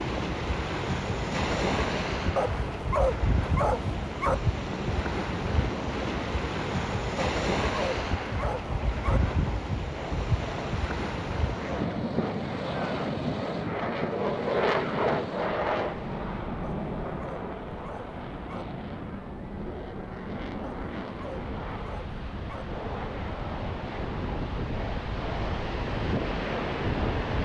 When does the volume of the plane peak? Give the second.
15 s.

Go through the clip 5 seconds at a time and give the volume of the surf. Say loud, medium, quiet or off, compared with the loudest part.
loud, loud, loud, medium, medium, loud.